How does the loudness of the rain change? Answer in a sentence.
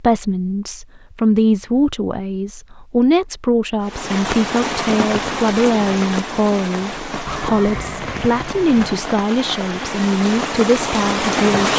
The volume of the rain goes down, then up.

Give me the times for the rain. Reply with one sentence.
The rain can be heard from 3.9 to 11.7 s.